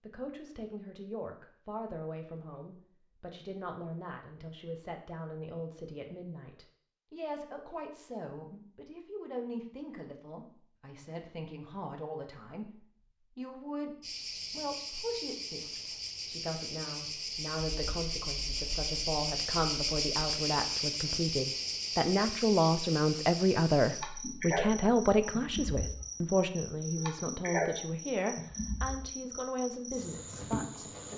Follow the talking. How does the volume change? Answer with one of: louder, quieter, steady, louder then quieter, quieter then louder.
louder.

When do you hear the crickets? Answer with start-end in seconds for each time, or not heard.
14.0-31.1.